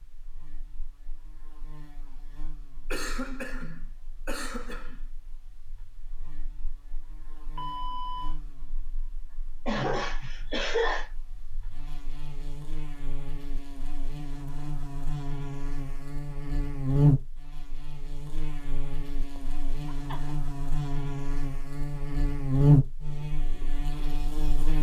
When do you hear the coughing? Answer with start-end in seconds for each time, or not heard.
2.9-5.0, 9.7-11.1, 19.4-20.4.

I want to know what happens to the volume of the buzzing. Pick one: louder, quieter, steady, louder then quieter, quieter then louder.
louder.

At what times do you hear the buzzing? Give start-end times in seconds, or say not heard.
0.0-24.7.